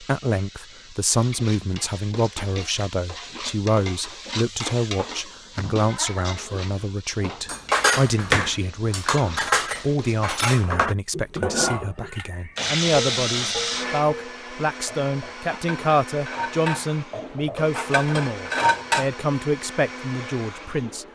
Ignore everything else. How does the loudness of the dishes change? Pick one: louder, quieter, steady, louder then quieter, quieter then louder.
quieter then louder.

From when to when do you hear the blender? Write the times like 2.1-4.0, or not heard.
12.6-21.0.